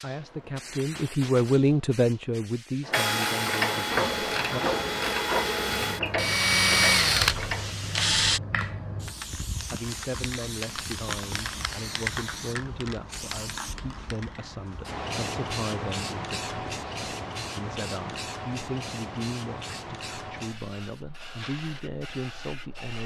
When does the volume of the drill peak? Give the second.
7 s.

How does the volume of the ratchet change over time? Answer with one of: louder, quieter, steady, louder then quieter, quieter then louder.
quieter.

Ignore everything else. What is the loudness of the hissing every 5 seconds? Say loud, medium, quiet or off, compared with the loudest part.
medium, loud, loud, loud, medium.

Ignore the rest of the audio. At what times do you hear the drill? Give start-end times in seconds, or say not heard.
2.9-8.4.